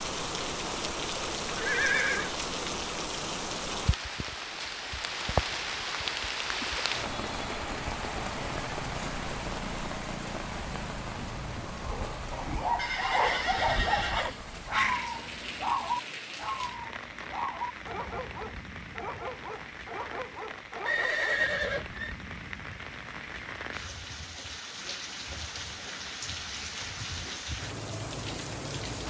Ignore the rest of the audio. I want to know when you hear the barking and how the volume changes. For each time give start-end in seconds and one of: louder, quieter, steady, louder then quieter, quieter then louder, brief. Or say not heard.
11.8-21.5 quieter.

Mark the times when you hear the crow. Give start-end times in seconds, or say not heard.
not heard.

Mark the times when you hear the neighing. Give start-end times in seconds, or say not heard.
1.5-2.3, 12.8-15.2, 20.9-22.1.